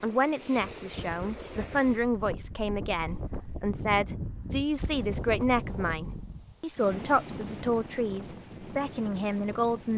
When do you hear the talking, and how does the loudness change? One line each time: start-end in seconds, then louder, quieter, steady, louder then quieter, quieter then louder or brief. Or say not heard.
0.0-9.9 steady.